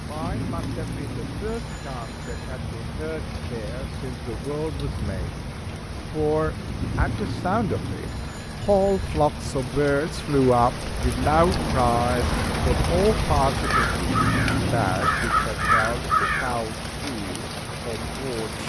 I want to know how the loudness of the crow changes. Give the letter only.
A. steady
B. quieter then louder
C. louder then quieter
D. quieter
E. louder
E.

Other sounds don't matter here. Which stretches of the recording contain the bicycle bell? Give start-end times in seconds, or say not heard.
0.2-2.6, 6.8-9.2, 14.1-15.1.